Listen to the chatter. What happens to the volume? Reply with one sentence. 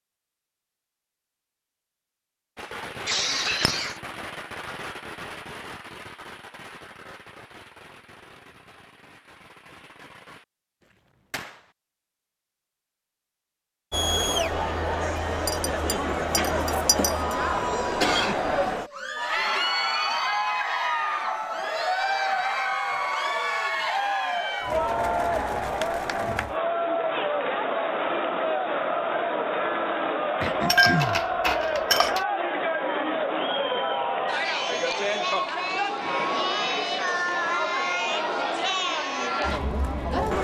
The volume of the chatter stays about the same.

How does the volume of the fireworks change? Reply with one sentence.
The loudness of the fireworks goes down.